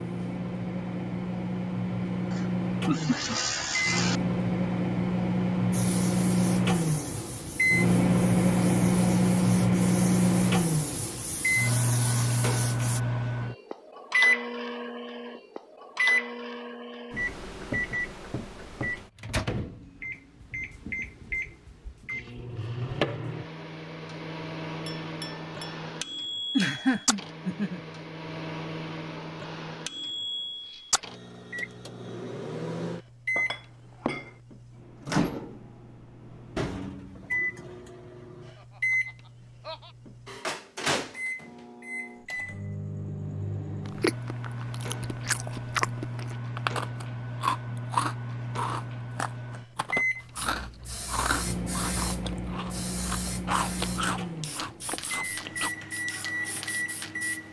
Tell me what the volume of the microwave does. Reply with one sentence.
The loudness of the microwave goes down.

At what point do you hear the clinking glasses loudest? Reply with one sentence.
The volume of the clinking glasses peaks at 34 seconds.